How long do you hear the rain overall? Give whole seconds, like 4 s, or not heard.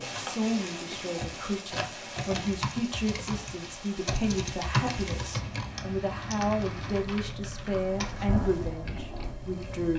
10 s.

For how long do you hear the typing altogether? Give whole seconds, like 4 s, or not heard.
10 s.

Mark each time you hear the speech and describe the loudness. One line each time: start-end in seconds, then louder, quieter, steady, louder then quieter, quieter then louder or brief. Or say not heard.
0.0-9.9 steady.